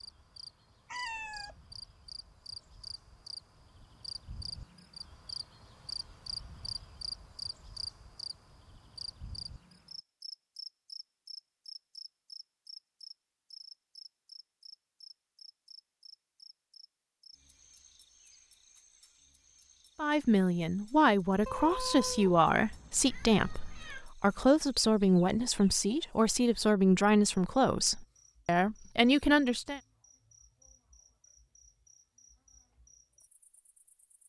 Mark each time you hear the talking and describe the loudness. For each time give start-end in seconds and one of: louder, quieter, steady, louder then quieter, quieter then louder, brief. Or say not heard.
19.9-29.8 steady.